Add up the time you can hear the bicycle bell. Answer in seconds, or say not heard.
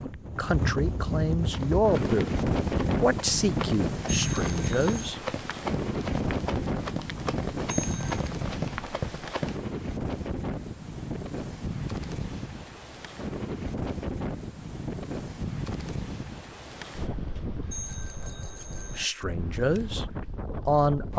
3 s.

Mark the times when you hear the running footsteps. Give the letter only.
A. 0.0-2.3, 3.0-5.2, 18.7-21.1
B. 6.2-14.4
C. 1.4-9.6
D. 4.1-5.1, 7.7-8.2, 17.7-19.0
C.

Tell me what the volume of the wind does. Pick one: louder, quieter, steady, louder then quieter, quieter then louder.
quieter.